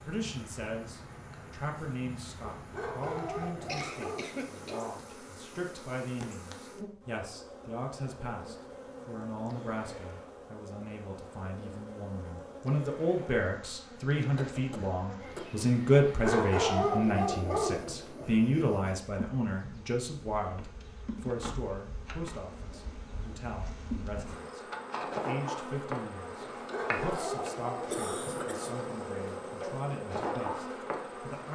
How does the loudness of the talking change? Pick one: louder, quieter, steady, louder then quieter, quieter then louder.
louder then quieter.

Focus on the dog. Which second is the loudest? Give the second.
17 s.